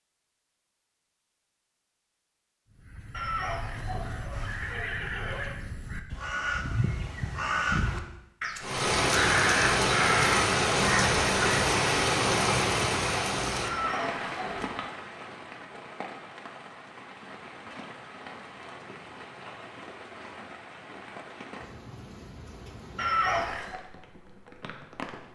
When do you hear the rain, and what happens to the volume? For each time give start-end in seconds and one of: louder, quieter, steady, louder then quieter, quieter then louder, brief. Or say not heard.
8.6-25.3 quieter.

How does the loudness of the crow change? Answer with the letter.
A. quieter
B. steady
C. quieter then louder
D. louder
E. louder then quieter
D.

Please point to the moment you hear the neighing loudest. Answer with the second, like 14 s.
23 s.